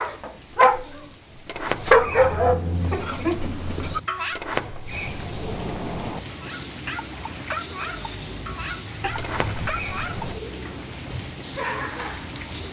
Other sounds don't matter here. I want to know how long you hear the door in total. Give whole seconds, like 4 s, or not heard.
4 s.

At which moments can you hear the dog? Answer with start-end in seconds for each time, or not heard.
0.0-1.1, 1.8-4.4, 6.3-12.6.